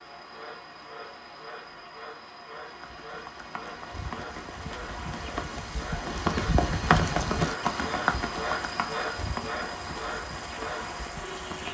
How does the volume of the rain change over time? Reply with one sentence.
The volume of the rain goes up.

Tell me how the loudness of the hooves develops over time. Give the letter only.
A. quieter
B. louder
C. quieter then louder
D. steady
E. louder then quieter
E.